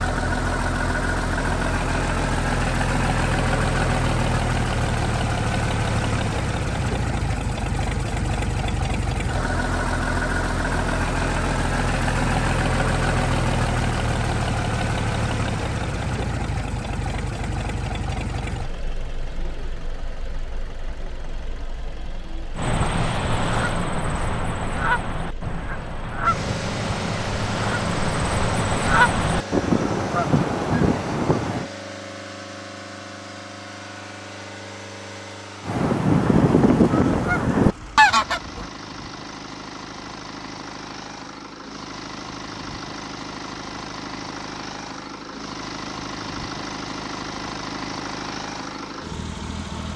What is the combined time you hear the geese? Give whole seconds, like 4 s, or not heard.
12 s.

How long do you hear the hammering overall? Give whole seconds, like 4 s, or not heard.
not heard.